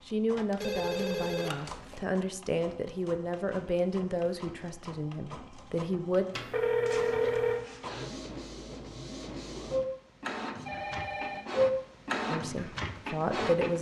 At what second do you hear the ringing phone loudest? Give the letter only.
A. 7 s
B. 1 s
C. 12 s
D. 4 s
A.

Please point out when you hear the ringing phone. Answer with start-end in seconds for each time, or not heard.
0.5-2.0, 6.3-7.6, 10.6-11.4.